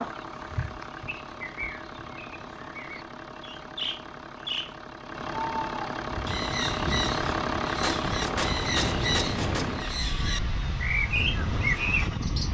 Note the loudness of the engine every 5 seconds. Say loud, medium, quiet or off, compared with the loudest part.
medium, loud, medium.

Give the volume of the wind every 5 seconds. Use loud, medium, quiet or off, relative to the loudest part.
off, loud, loud.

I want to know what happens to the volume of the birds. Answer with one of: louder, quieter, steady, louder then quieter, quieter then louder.
louder.